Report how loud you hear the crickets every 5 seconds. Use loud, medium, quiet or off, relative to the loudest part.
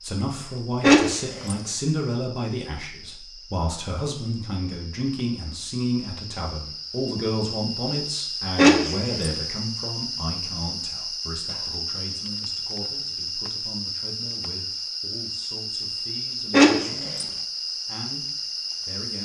quiet, loud, loud, loud.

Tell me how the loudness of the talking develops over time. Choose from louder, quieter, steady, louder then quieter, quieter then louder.
quieter.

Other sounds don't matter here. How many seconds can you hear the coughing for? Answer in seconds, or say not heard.
2 s.